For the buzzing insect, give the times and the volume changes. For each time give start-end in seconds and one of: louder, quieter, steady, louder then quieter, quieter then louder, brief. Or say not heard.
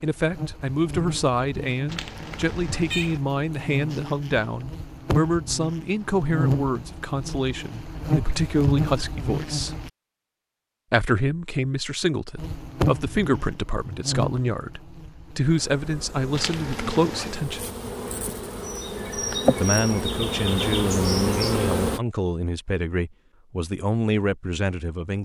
0.0-9.9 louder
12.3-22.0 quieter then louder.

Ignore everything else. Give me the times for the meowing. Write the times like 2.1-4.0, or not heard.
1.9-3.2, 16.3-17.4.